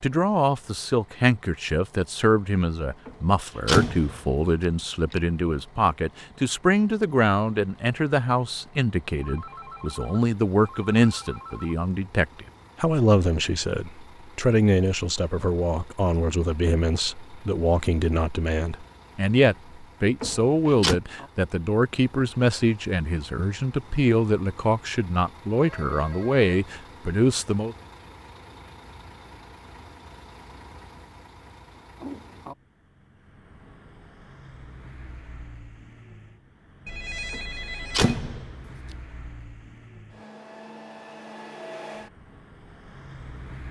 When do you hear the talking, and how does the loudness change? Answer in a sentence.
You can hear the talking from 0.0 to 27.8 s, at a steady volume.